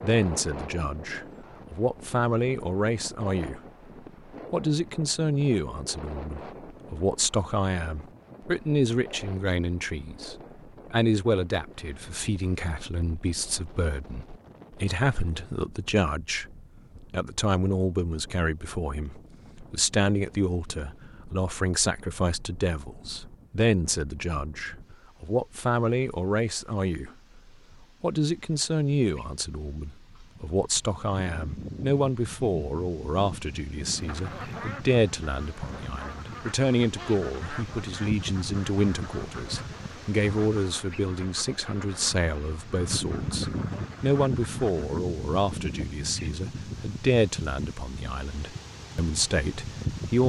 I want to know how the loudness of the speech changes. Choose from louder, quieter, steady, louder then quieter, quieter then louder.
steady.